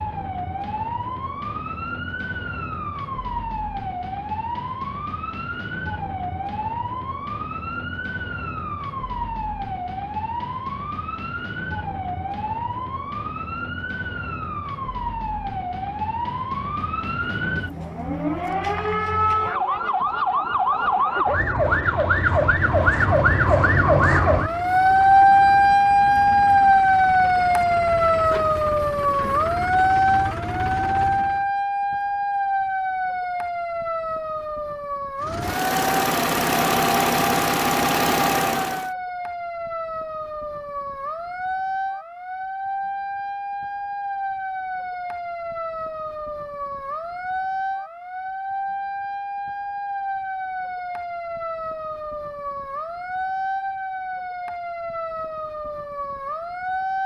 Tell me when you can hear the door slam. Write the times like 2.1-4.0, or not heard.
not heard.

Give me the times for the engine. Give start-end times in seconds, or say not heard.
22.6-31.4, 35.2-38.9.